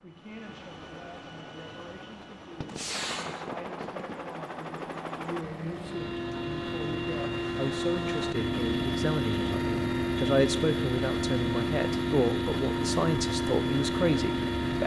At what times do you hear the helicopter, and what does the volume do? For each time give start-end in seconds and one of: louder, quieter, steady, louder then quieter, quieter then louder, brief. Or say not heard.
0.0-14.8 louder.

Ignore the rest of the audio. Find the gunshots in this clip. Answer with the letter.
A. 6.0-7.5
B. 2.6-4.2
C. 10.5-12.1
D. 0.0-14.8
B.